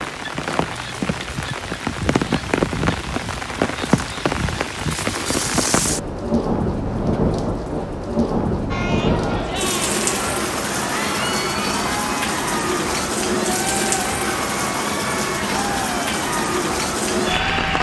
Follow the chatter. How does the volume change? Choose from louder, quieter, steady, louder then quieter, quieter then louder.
steady.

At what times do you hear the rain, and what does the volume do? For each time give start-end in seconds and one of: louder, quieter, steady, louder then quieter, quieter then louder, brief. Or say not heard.
0.0-17.7 steady.